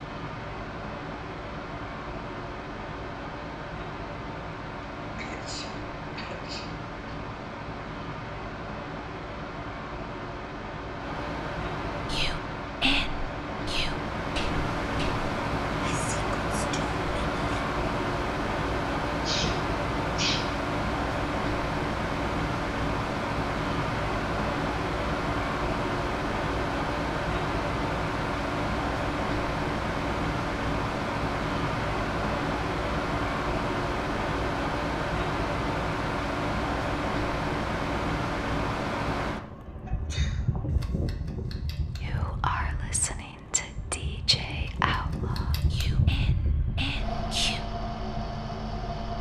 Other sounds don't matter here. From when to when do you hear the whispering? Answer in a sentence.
You can hear the whispering from 12.1 to 17.6 s and from 42.0 to 47.6 s.